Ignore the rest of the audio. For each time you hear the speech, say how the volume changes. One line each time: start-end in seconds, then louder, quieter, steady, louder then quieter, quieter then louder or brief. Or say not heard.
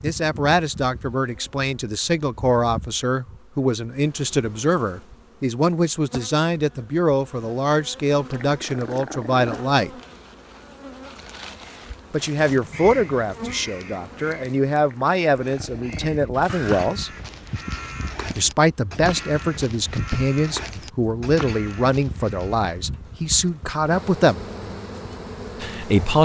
0.0-9.9 steady
12.1-17.1 quieter then louder
18.4-24.4 steady
25.6-26.2 brief.